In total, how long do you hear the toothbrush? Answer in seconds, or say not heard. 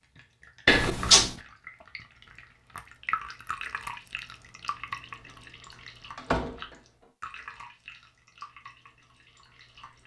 not heard.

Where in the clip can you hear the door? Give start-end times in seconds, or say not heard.
0.7-1.4, 6.2-6.8.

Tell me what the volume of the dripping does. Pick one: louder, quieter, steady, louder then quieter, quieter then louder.
louder then quieter.